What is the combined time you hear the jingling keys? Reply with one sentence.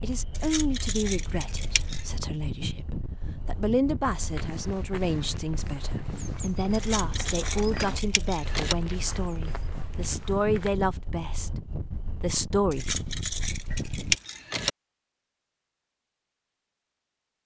The jingling keys can be heard for 6 seconds in total.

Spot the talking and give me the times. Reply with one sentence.
You can hear the talking from 0.0 to 13.0 s.